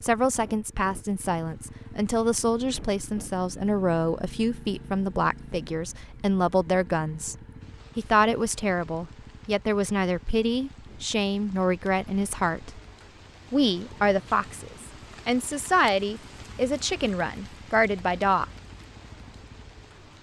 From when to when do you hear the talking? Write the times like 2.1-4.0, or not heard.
0.0-7.3, 8.0-12.7, 13.5-18.4.